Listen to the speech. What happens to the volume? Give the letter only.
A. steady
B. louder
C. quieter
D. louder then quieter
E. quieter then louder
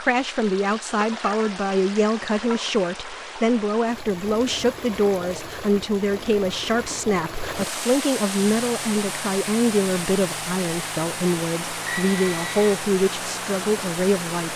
A.